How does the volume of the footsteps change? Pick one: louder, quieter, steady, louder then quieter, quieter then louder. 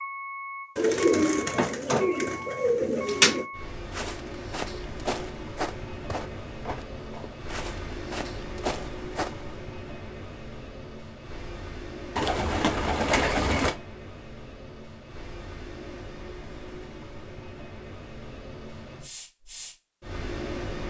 quieter then louder.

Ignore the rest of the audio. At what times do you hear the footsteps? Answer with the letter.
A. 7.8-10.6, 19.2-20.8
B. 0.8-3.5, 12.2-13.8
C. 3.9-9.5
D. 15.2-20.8
C.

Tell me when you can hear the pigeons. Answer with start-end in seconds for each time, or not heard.
0.8-3.5, 12.2-13.8.